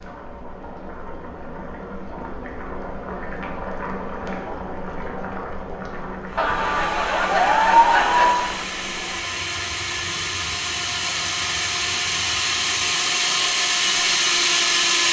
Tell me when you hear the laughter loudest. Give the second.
8 s.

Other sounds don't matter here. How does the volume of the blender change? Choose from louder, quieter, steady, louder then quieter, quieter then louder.
louder.